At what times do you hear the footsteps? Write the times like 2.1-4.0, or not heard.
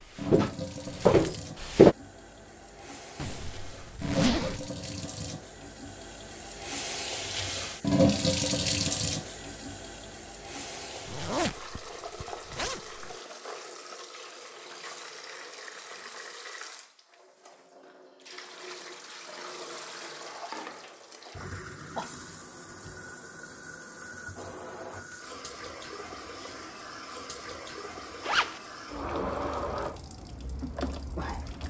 0.1-1.9.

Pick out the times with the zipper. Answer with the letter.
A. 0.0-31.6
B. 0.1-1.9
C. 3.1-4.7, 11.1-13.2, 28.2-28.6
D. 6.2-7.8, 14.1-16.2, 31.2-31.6
C.